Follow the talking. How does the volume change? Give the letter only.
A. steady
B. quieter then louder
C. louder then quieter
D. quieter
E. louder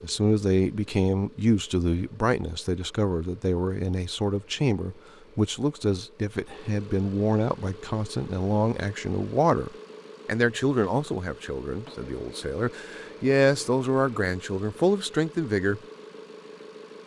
A.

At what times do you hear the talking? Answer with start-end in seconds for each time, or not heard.
0.0-15.8.